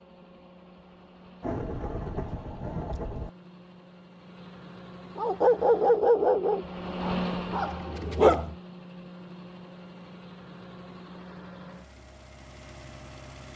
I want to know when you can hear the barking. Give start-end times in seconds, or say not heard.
5.2-8.6.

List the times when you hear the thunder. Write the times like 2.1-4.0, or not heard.
1.4-3.3.